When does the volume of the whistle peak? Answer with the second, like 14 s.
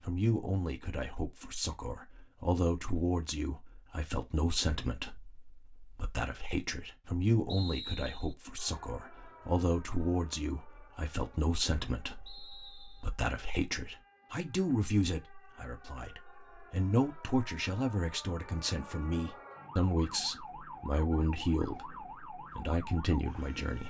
8 s.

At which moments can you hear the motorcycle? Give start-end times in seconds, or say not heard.
not heard.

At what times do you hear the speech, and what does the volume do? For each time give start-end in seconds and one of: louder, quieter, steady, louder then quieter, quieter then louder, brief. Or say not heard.
0.0-23.8 steady.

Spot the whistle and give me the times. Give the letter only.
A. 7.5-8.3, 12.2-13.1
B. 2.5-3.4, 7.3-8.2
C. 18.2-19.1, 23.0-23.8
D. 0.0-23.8
A.